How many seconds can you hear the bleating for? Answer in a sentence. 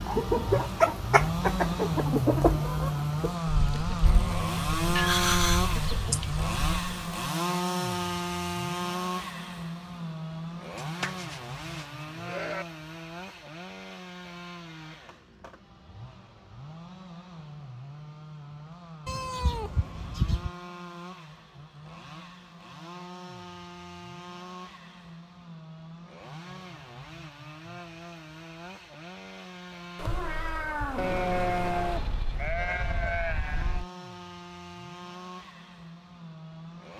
The bleating can be heard for 5 seconds in total.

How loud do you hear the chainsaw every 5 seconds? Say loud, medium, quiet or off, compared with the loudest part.
loud, loud, medium, quiet, quiet, quiet, quiet, quiet.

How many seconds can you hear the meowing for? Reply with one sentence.
The meowing can be heard for 5 seconds in total.